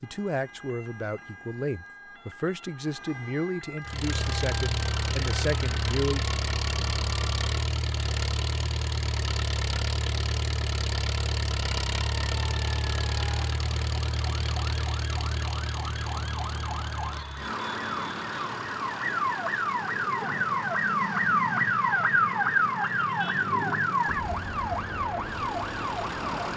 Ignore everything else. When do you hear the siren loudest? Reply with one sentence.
The loudest moment of the siren is at 22 seconds.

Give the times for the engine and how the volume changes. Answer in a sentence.
The engine can be heard from 3.8 to 26.5 s, getting quieter.